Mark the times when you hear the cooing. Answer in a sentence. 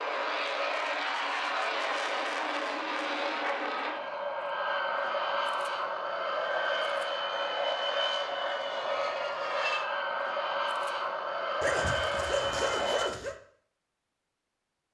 The cooing can't be heard in this clip.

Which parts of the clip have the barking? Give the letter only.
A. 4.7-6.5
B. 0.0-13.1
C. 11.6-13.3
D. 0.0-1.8
C.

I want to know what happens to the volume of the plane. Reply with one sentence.
The volume of the plane stays about the same.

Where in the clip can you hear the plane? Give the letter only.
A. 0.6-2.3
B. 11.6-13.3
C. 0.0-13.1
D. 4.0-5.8
C.